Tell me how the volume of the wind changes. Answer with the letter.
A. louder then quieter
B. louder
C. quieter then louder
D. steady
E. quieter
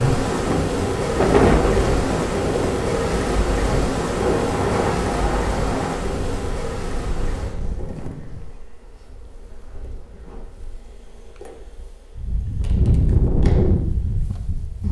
C.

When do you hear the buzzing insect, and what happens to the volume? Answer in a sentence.
The buzzing insect can be heard from 0.0 to 14.8 s, getting quieter.